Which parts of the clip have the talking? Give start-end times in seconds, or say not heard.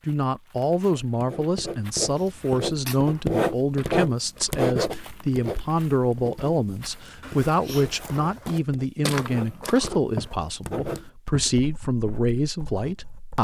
0.1-13.3.